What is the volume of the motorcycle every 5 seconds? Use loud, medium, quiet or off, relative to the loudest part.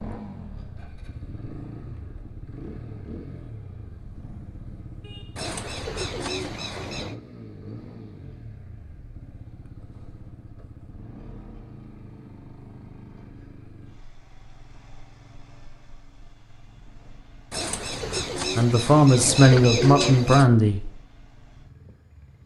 loud, loud, medium, quiet, quiet.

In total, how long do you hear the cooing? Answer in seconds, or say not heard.
5 s.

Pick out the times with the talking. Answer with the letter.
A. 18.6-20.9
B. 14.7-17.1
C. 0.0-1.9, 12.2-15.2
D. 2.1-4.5
A.